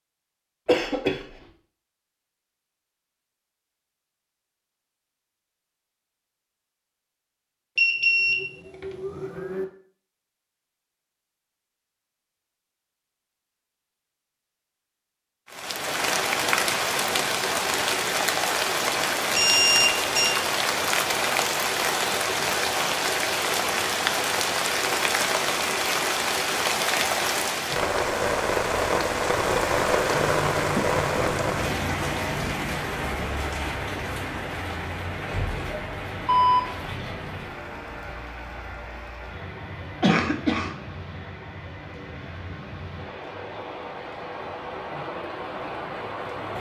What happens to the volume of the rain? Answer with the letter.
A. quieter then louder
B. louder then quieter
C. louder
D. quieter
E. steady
D.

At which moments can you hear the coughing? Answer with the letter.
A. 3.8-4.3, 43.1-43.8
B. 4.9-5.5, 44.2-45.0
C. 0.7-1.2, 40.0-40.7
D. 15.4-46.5
C.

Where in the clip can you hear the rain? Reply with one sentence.
You can hear the rain from 15.4 to 46.5 s.